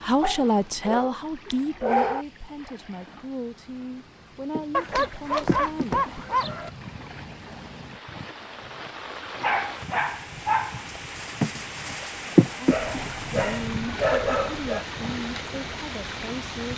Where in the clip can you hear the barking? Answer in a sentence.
You can hear the barking from 0.2 to 2.2 s, from 4.7 to 6.7 s, from 9.3 to 10.8 s and from 12.7 to 14.8 s.